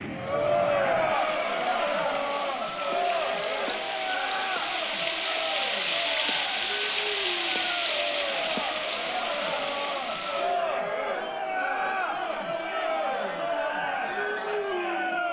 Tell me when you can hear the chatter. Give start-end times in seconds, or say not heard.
0.0-15.2.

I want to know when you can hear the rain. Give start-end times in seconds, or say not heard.
0.0-10.7.